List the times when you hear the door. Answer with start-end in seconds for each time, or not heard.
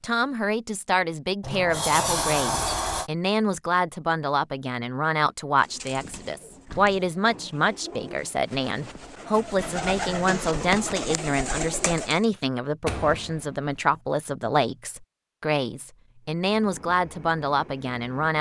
1.4-3.1, 6.5-7.2, 12.8-13.8.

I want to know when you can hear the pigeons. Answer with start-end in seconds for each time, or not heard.
5.5-12.2.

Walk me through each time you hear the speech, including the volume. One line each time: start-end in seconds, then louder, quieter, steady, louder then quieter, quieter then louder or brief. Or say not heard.
0.0-18.3 steady.